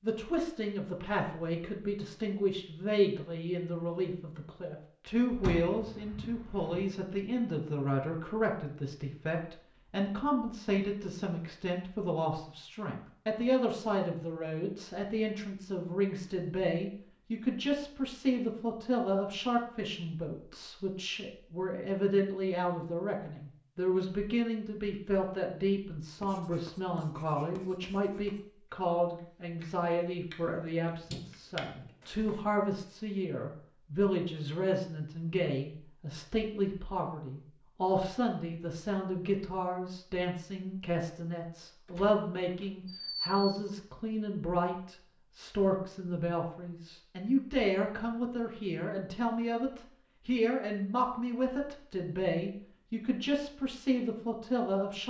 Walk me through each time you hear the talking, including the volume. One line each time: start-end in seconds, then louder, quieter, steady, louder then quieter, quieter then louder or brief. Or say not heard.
0.0-55.0 steady.